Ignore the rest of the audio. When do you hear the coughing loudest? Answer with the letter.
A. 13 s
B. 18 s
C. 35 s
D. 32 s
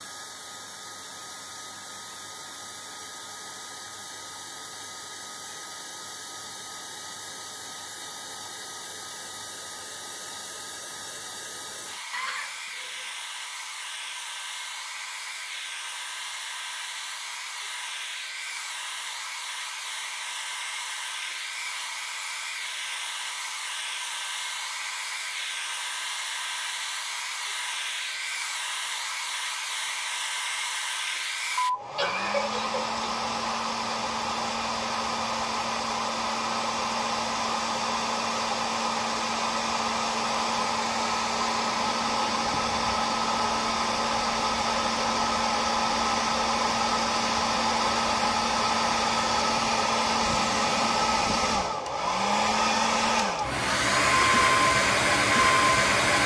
D.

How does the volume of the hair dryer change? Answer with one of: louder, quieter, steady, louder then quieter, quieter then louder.
louder.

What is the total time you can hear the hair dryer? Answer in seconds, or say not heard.
56 s.